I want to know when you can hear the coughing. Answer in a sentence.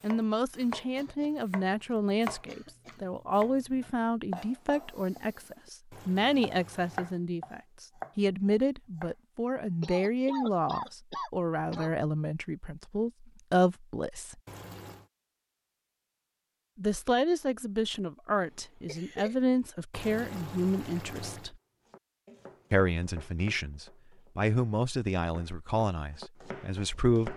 You can hear the coughing from 0.9 to 3.0 s, from 9.8 to 11.9 s and from 18.4 to 19.4 s.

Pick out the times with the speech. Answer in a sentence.
You can hear the speech from 0.0 to 14.3 s, from 16.8 to 21.6 s and from 22.7 to 27.3 s.